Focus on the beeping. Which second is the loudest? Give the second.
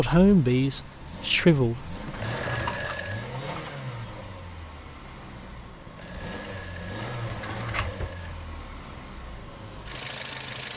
3 s.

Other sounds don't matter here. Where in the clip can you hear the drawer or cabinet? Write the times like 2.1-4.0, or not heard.
2.1-3.8, 7.2-8.2.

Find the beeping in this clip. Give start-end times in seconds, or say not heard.
2.1-3.3, 6.0-8.4.